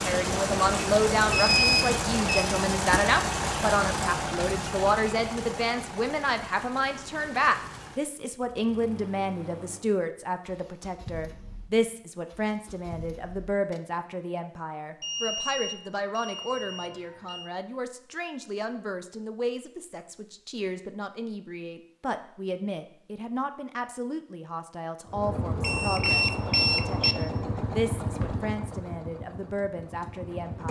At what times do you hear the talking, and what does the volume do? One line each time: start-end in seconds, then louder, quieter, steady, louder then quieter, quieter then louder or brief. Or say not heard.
0.0-30.6 quieter.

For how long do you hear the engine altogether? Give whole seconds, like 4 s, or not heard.
19 s.